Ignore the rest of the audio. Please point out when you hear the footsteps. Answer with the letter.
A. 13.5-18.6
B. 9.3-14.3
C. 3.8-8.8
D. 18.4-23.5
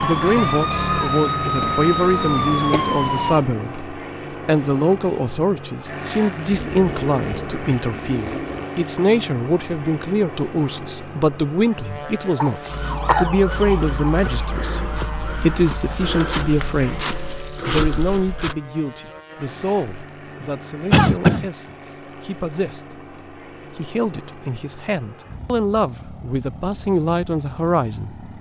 A.